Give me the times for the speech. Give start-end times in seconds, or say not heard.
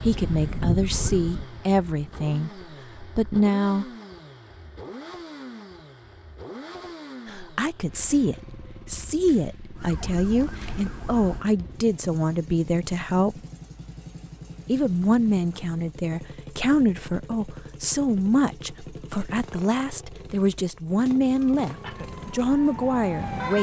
0.0-3.9, 7.2-13.4, 14.7-23.5.